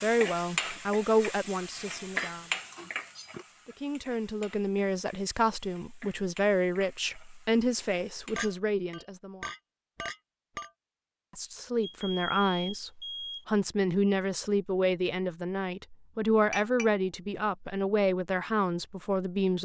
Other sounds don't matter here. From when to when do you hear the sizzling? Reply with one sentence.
You can hear the sizzling from 0.0 to 8.6 s.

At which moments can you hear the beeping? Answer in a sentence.
You can hear the beeping from 11.8 to 13.4 s.